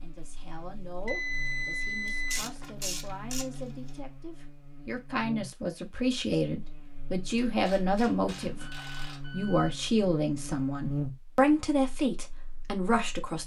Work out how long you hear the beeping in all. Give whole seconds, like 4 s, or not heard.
3 s.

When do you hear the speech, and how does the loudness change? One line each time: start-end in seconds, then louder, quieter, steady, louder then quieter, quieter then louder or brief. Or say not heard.
0.0-13.4 louder.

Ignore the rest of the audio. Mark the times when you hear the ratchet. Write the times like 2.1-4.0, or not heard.
2.0-4.0, 7.5-9.2.